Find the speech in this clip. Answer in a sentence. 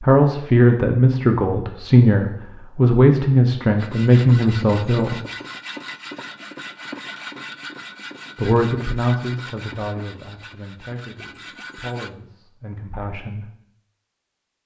The speech can be heard from 0.0 to 5.2 s and from 8.3 to 13.4 s.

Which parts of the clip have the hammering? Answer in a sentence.
You can't hear the hammering here.